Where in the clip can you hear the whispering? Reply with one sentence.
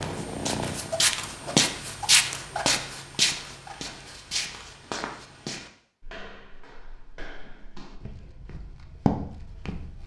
The whispering can't be heard in this clip.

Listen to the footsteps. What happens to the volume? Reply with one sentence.
The loudness of the footsteps goes down, then up.